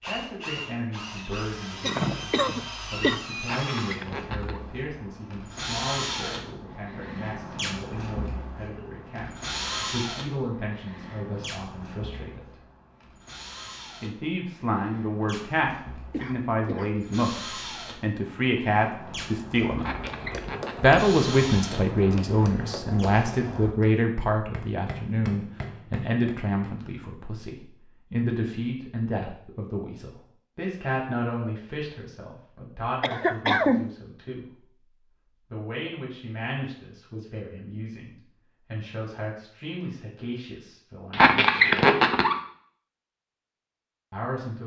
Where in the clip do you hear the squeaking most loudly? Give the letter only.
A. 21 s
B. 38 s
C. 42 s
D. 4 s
C.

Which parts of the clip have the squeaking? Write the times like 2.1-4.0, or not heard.
3.4-4.6, 19.8-20.9, 41.1-42.4.